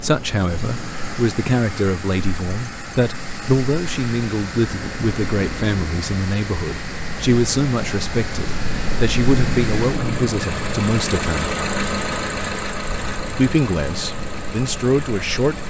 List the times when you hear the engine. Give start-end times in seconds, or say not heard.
0.0-15.6.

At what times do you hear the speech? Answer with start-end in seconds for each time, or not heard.
0.0-11.5, 13.3-15.6.